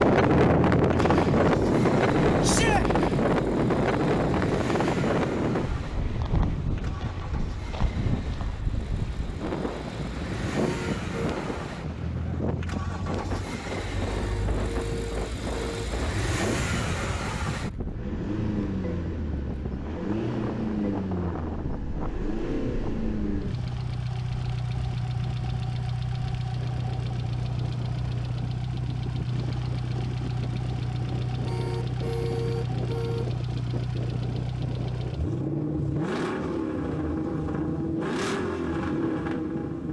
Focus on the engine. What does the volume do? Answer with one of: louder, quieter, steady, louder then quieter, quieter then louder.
louder.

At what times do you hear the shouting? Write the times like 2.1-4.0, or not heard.
2.4-2.9.